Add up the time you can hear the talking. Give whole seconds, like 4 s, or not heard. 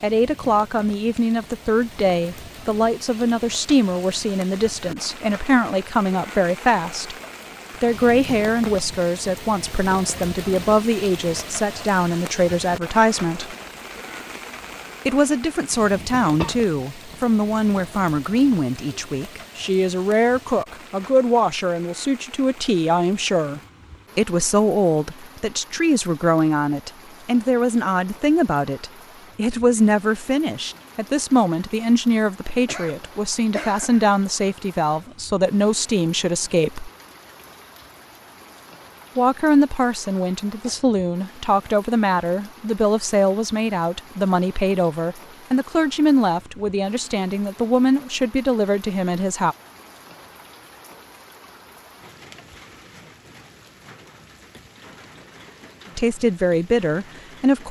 47 s.